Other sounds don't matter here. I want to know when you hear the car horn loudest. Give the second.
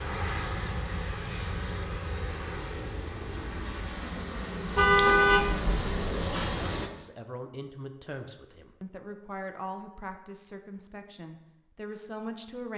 5 s.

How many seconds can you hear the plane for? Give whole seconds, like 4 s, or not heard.
7 s.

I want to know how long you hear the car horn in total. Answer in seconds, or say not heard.
2 s.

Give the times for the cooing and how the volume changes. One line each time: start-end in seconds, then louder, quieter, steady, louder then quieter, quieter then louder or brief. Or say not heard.
not heard.